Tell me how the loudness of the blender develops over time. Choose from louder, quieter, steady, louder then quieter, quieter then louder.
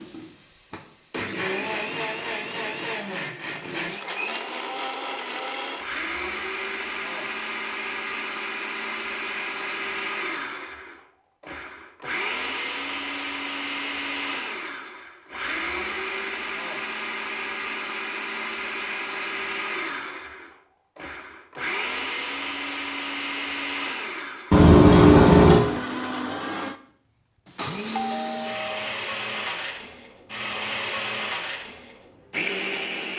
steady.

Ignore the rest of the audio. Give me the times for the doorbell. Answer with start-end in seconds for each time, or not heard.
27.4-28.9.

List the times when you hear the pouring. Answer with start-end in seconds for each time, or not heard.
24.5-25.6.